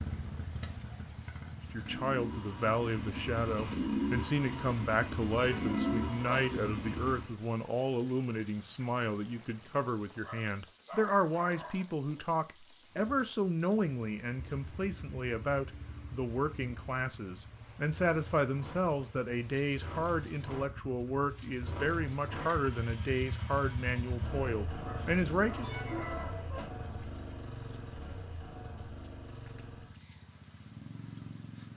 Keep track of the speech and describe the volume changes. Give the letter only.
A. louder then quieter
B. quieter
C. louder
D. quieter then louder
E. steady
E.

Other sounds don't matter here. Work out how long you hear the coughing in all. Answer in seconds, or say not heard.
2 s.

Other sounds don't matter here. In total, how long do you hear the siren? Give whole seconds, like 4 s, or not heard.
not heard.